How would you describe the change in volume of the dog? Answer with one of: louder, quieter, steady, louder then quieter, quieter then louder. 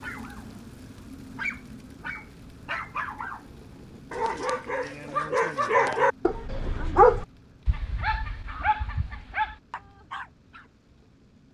louder then quieter.